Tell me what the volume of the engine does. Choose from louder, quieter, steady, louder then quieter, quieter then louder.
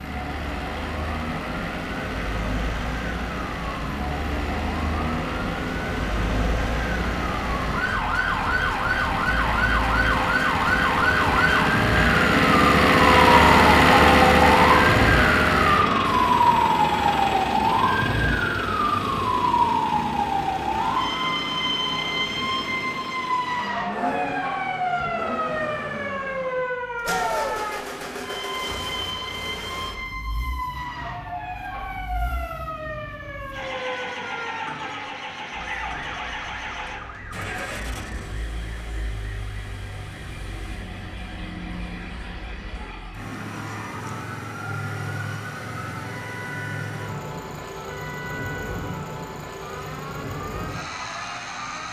louder then quieter.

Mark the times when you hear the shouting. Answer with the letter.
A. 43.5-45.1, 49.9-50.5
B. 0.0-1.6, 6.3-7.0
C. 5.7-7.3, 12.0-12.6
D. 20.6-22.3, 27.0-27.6
D.